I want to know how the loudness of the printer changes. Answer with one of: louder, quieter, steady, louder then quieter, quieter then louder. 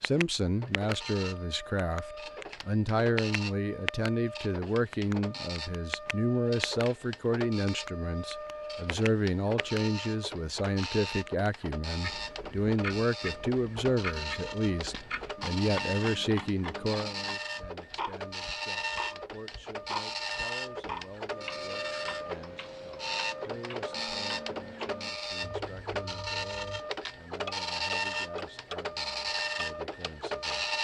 louder.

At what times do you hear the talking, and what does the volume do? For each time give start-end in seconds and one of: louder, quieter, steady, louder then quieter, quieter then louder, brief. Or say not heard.
0.0-30.7 quieter.